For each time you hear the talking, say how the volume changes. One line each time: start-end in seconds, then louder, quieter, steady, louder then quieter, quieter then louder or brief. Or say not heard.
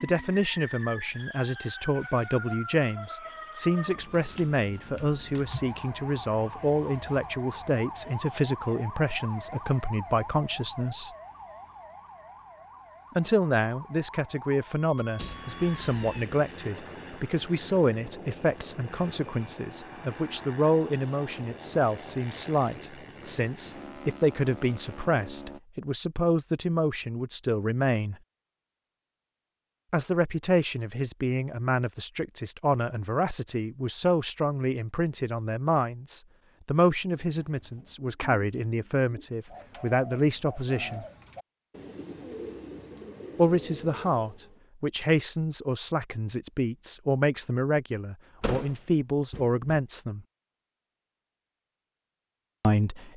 0.0-11.1 steady
13.2-28.1 steady
29.9-41.0 steady
43.4-50.2 steady
52.6-53.1 brief.